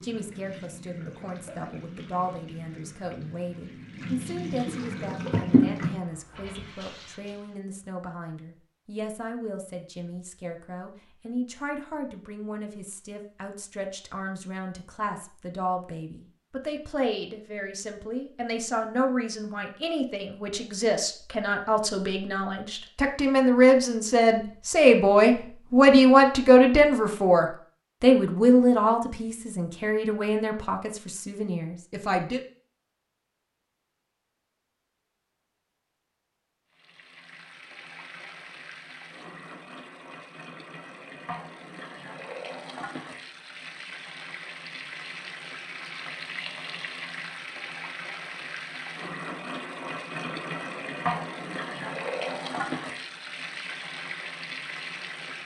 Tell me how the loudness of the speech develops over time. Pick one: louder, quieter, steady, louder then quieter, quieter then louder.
louder.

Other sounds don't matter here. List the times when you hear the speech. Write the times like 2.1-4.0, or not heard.
0.0-32.4.